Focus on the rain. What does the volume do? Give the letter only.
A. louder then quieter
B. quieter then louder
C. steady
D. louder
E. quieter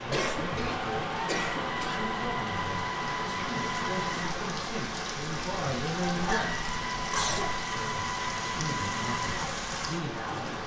C.